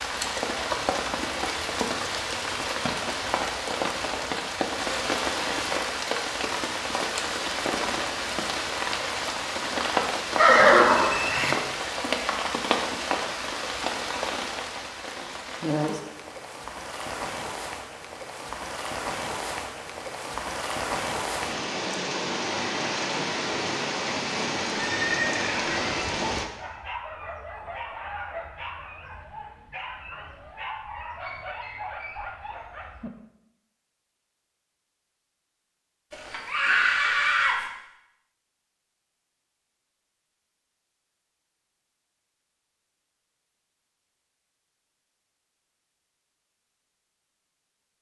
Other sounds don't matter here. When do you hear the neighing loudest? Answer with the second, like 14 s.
11 s.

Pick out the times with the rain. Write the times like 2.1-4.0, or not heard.
0.0-26.4.